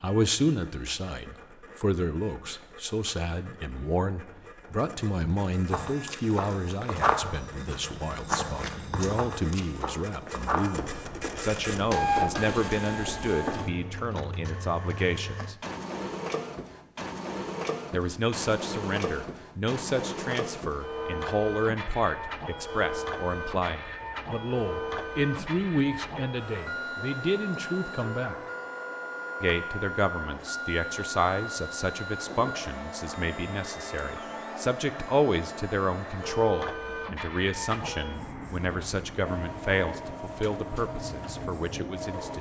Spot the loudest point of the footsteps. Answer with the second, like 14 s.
7 s.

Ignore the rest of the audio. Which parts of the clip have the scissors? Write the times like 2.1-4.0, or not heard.
not heard.